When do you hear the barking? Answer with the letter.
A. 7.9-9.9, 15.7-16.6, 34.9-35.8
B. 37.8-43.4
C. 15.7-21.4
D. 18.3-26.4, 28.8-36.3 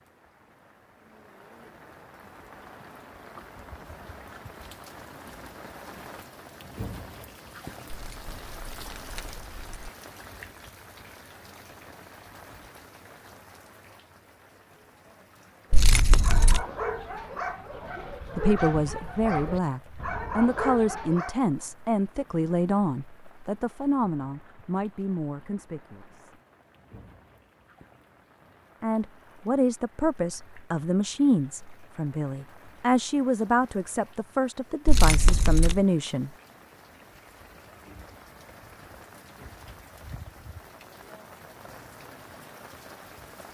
C.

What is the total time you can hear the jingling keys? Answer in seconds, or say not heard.
4 s.